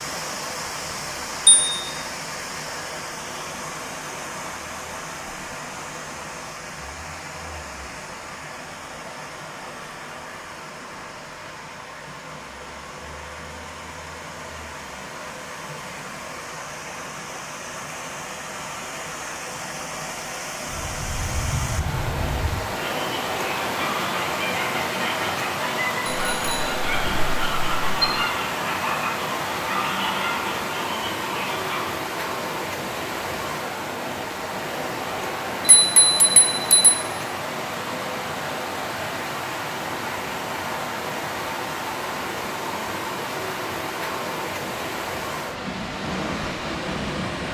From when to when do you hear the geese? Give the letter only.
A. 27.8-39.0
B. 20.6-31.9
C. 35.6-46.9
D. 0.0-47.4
B.